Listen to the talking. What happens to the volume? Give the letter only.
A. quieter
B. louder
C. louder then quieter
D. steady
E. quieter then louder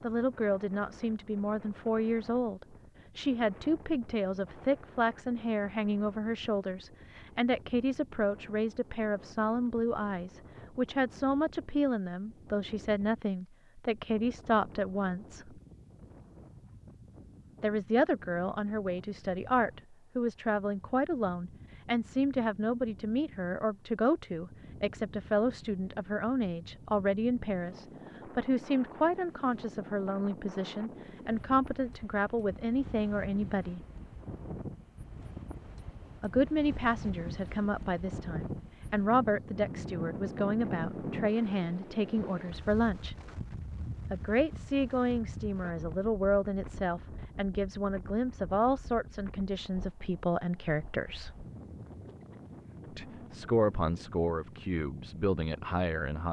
D.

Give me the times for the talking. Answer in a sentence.
The talking can be heard from 0.0 to 15.6 s, from 17.6 to 33.8 s, from 36.2 to 43.1 s, from 44.1 to 51.4 s and from 52.9 to 56.2 s.